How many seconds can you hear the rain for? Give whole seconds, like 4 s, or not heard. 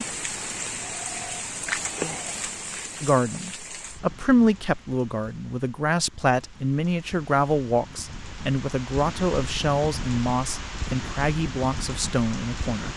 13 s.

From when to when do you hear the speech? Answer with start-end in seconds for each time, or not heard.
3.0-12.9.